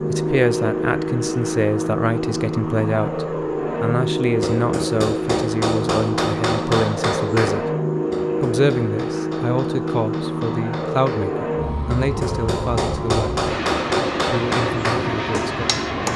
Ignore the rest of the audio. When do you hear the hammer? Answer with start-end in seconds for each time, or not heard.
4.4-16.1.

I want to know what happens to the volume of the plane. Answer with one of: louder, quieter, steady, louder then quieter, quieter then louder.
steady.